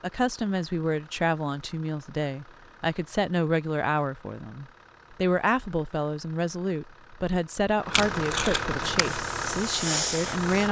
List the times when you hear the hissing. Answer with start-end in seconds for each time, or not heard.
8.9-10.6.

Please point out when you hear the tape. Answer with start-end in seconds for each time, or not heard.
7.9-9.1.